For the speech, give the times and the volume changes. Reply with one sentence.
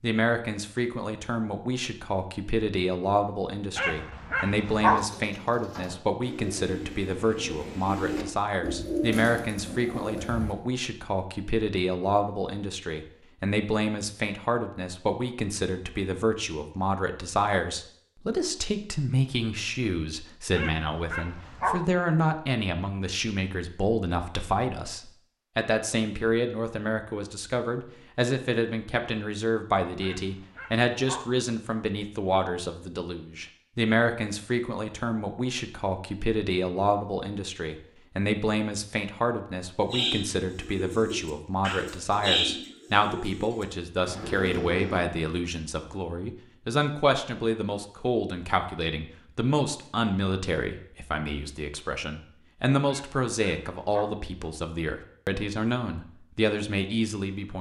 The speech can be heard from 0.0 to 57.5 s, at a steady volume.